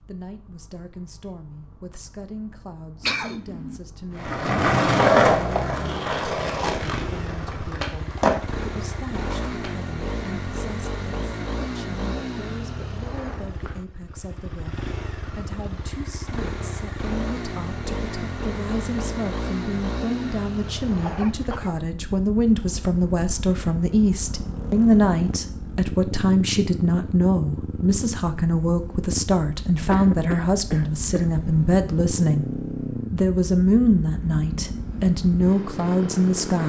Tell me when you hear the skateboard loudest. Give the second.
5 s.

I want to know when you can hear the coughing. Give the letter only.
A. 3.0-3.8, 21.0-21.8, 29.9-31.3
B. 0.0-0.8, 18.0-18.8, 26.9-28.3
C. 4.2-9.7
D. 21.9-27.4
A.